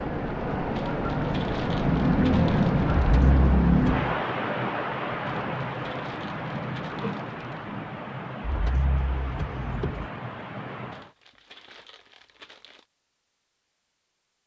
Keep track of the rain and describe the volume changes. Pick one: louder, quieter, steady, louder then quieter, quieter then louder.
quieter.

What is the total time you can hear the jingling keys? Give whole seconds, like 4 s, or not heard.
3 s.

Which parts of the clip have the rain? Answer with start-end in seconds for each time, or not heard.
0.0-11.2.